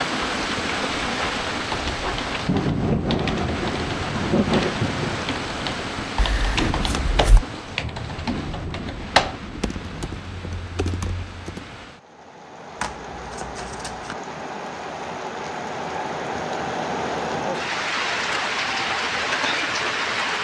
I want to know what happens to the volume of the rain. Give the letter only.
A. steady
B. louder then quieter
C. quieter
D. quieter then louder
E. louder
D.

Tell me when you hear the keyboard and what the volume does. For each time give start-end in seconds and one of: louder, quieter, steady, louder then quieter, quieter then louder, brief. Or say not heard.
1.5-11.8 louder then quieter.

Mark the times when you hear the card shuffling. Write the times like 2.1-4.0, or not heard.
6.2-7.5, 12.8-14.2.